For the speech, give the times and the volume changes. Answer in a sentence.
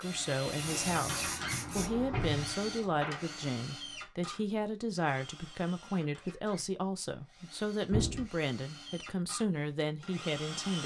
The speech can be heard from 0.0 to 10.8 s, at a steady volume.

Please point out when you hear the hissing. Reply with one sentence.
The hissing can be heard from 0.0 to 1.9 s.